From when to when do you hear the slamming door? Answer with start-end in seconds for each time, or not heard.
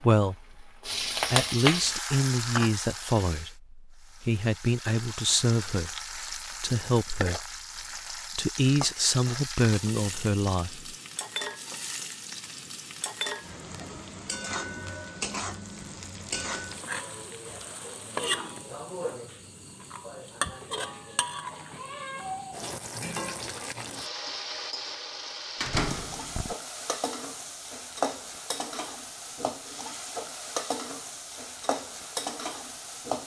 25.6-26.6.